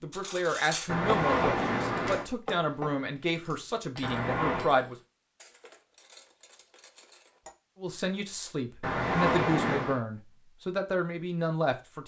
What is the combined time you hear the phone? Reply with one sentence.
You can hear the phone for 3 seconds altogether.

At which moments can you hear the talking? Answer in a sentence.
You can hear the talking from 0.0 to 5.0 s and from 7.8 to 12.0 s.